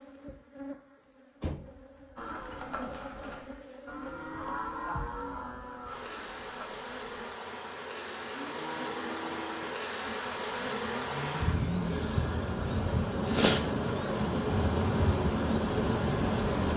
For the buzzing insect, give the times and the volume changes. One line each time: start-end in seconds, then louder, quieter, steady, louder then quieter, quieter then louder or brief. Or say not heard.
0.0-16.7 louder.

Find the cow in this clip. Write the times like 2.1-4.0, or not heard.
2.1-12.1.